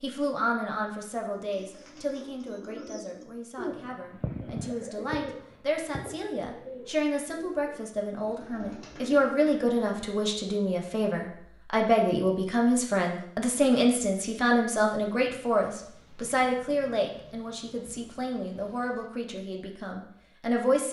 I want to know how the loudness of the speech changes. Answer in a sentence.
The loudness of the speech goes up, then down.